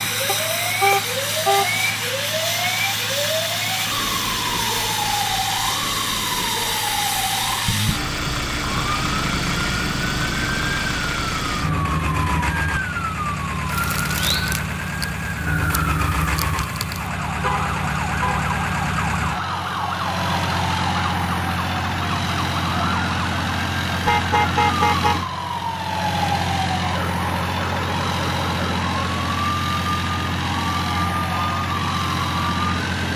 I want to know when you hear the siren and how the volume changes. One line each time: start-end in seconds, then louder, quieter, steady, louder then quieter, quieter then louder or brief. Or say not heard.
0.0-33.1 steady.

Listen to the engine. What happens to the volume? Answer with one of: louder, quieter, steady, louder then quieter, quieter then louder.
steady.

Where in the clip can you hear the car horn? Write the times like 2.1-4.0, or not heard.
0.2-1.7, 17.4-18.5, 24.1-25.2.